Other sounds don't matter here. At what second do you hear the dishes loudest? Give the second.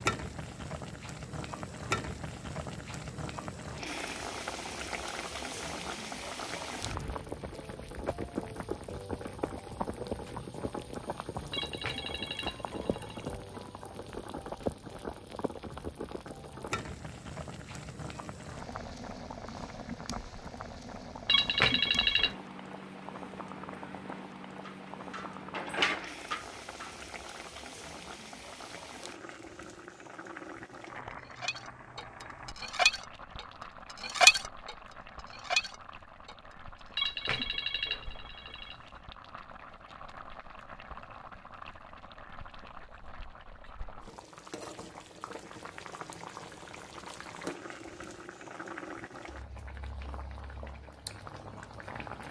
34 s.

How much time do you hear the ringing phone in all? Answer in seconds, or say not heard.
5 s.